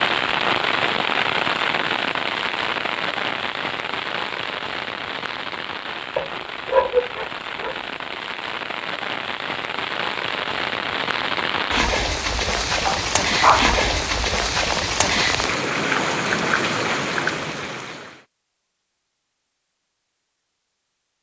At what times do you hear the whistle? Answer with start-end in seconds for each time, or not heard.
not heard.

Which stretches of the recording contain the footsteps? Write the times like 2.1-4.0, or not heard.
not heard.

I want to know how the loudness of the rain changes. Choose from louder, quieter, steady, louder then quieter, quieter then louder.
quieter then louder.